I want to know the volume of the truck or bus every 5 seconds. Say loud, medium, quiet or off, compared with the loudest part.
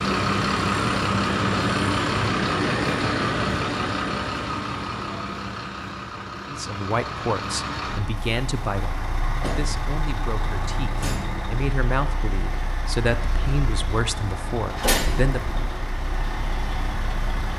loud, medium, medium, medium.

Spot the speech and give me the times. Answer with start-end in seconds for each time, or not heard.
6.5-15.6.